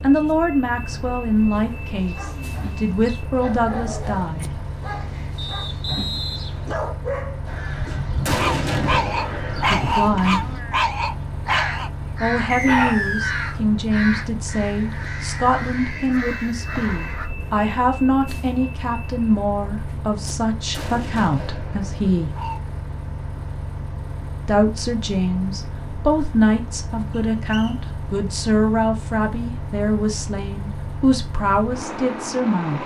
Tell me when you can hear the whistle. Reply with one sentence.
You can hear the whistle from 5.3 to 6.8 s, from 12.4 to 13.6 s and from 27.1 to 27.8 s.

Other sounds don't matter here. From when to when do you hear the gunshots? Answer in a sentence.
You can hear the gunshots from 8.2 to 10.1 s and from 20.7 to 22.6 s.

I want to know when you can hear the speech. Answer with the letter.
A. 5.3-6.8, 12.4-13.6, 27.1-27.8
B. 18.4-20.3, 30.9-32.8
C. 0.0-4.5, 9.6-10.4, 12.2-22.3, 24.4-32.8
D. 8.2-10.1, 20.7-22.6
C.